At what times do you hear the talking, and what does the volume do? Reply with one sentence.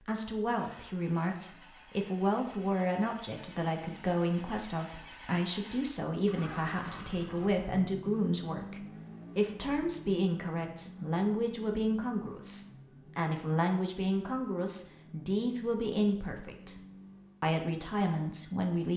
The talking can be heard from 0.0 to 18.9 s, at a steady volume.